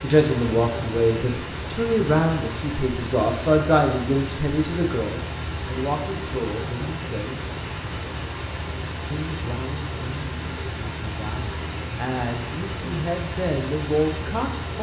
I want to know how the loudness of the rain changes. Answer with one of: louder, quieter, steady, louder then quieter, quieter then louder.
steady.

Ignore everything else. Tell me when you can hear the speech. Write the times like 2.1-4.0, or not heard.
0.0-7.4, 9.1-14.7.